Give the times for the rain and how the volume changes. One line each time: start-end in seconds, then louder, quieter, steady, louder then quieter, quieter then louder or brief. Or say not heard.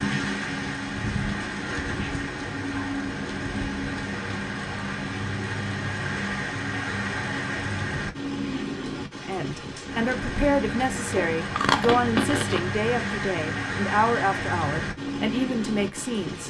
0.0-16.4 steady.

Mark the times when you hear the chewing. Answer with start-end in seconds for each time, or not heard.
11.2-12.7.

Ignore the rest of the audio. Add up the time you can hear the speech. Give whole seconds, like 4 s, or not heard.
7 s.